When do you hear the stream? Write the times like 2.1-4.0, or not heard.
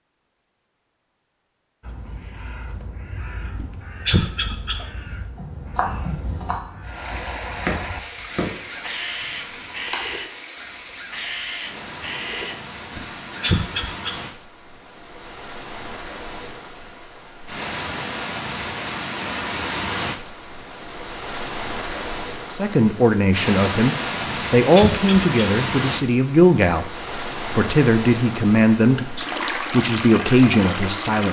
6.8-31.2.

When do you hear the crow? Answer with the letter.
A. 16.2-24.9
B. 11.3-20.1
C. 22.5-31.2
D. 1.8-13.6
D.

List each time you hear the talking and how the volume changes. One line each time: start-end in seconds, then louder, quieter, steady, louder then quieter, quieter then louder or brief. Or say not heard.
22.5-31.2 steady.